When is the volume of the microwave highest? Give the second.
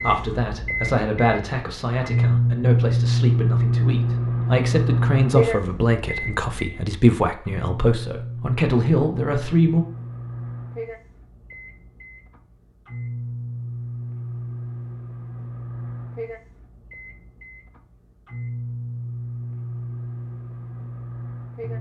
3 s.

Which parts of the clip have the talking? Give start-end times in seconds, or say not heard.
0.0-9.8.